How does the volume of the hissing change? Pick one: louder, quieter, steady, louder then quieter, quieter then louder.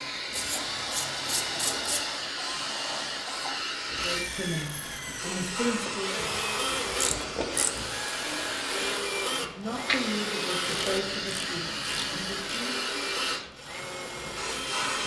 steady.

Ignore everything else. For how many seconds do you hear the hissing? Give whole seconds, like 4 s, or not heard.
15 s.